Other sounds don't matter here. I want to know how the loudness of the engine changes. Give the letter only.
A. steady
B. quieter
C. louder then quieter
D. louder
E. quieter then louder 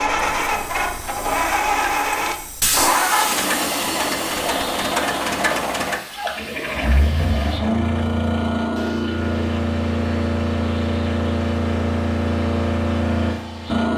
A.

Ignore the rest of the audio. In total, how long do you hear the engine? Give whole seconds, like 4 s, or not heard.
14 s.